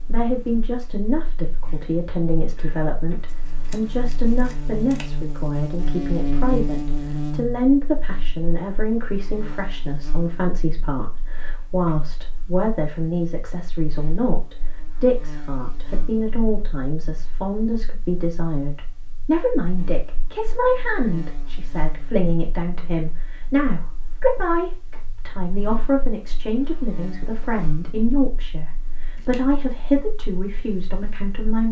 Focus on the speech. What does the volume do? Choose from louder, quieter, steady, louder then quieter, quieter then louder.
steady.